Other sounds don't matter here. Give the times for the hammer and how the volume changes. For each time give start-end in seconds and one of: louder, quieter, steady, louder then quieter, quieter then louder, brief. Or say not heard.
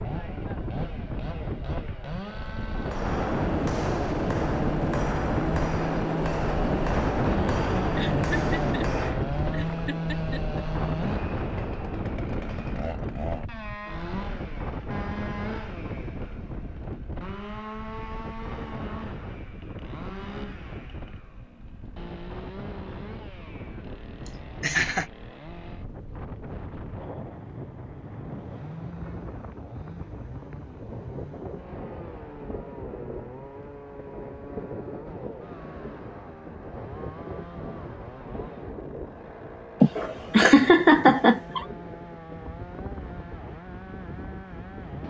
2.6-12.8 quieter.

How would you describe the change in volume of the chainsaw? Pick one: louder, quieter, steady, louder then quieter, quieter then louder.
quieter.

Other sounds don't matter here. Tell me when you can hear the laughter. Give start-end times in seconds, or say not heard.
8.0-10.6, 24.2-25.1, 39.8-41.6.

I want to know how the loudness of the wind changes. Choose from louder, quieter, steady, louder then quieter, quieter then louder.
quieter.